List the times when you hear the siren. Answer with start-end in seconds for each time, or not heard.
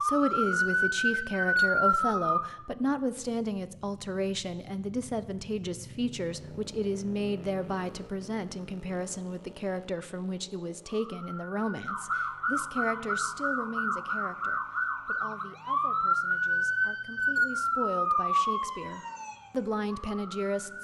0.0-2.5, 10.8-20.8.